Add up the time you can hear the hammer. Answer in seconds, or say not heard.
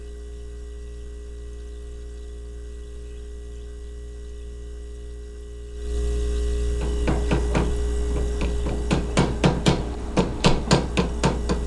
5 s.